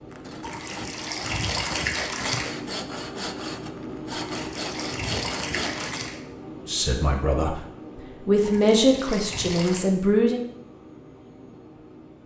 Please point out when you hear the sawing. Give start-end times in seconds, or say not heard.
0.1-6.0.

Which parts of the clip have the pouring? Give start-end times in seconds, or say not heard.
0.4-2.5, 4.1-6.2, 8.4-9.8.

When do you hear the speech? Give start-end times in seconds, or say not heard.
6.7-7.7, 8.2-10.4.